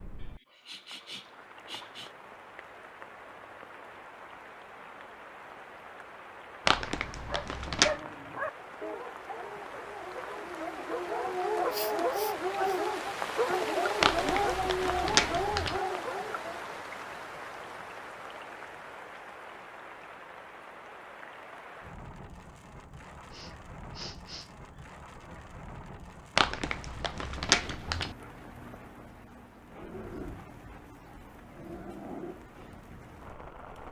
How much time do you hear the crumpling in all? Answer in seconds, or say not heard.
5 s.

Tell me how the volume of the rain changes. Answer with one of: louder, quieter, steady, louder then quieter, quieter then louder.
louder then quieter.